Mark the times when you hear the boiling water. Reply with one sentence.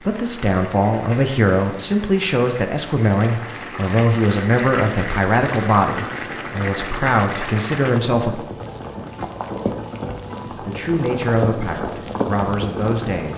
You can hear the boiling water from 0.0 to 13.3 s.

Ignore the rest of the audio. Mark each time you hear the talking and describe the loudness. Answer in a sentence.
You can hear the talking from 0.0 to 8.3 s, at a steady volume; and briefly from 10.4 to 13.3 s.